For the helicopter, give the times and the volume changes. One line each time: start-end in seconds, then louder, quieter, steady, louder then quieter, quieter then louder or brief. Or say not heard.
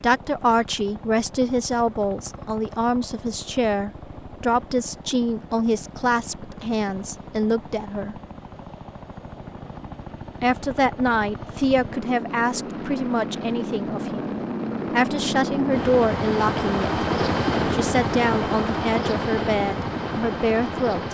0.0-21.0 louder.